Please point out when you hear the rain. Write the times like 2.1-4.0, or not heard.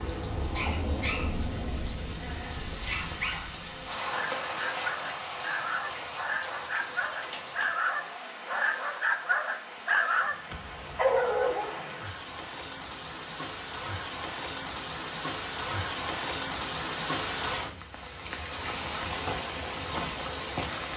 0.0-20.9.